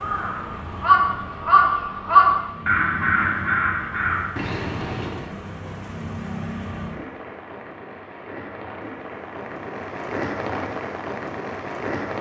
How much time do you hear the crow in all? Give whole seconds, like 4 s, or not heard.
5 s.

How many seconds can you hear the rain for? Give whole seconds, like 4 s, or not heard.
12 s.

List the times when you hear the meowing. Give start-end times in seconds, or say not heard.
not heard.